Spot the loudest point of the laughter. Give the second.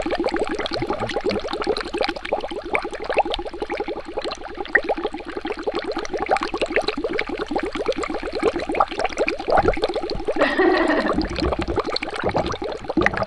11 s.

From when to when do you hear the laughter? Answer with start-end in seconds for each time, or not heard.
0.8-1.5, 10.3-11.2.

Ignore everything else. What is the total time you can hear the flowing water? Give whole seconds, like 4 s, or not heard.
13 s.